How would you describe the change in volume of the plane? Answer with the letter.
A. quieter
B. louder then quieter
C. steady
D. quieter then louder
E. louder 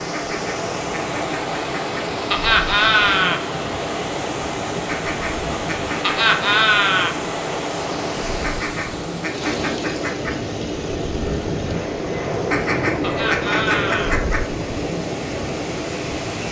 E.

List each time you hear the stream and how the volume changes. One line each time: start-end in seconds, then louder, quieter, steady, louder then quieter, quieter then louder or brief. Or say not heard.
0.0-16.4 quieter.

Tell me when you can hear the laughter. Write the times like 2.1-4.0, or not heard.
2.3-3.4, 6.0-7.2, 13.0-14.2.